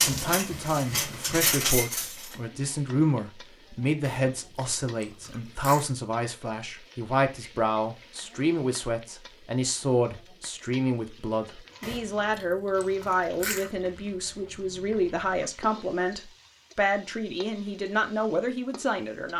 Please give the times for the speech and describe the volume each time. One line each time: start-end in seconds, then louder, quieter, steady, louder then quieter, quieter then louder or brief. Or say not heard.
0.0-19.3 steady.